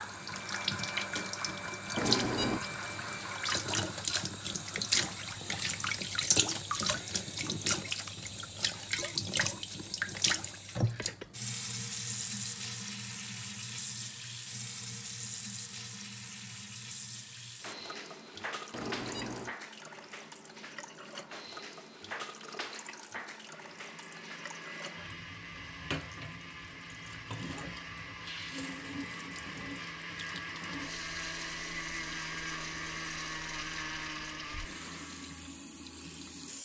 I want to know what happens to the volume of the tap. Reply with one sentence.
The volume of the tap goes down.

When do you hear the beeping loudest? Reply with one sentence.
The volume of the beeping peaks at 2 seconds.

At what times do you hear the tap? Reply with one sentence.
You can hear the tap from 0.0 to 36.5 s.